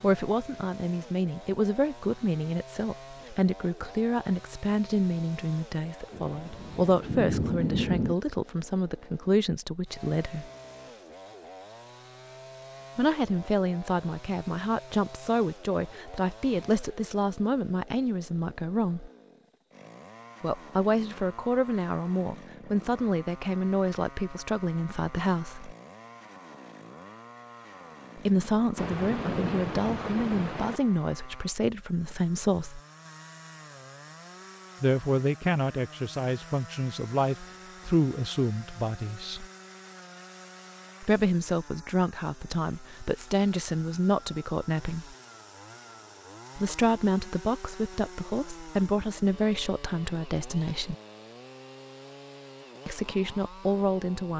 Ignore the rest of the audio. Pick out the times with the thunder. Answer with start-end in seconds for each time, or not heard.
6.1-8.2, 28.8-30.8.